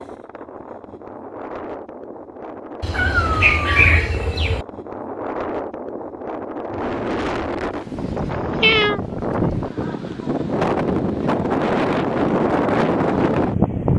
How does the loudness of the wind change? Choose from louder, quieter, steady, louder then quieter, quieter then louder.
louder.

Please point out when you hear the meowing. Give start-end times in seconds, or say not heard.
2.8-4.7, 8.0-9.0.